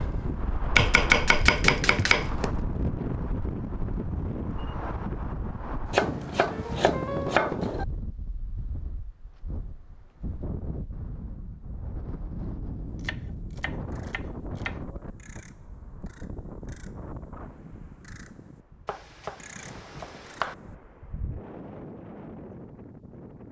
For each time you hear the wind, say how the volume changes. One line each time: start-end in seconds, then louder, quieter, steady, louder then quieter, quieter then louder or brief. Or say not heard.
0.0-23.4 quieter.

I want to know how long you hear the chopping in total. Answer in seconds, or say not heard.
7 s.